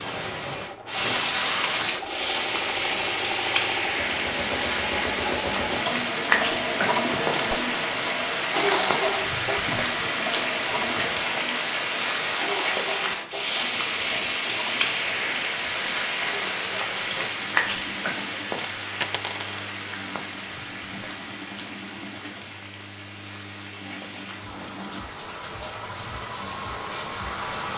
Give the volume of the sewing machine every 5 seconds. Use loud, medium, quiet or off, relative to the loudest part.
medium, loud, medium, quiet, quiet, quiet.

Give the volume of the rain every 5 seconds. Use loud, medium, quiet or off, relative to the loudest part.
loud, loud, loud, loud, quiet, medium.